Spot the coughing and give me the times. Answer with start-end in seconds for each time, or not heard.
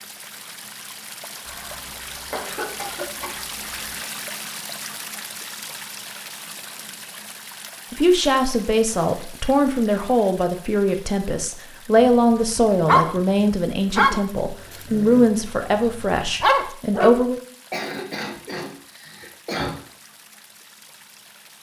1.4-4.0, 17.7-19.7.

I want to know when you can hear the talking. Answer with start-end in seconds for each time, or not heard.
7.9-17.4.